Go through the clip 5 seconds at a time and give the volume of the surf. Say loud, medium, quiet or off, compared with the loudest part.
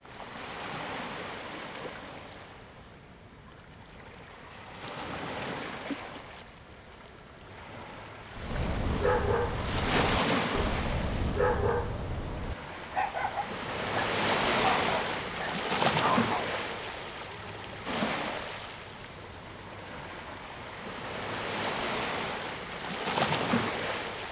medium, medium, loud, loud, loud.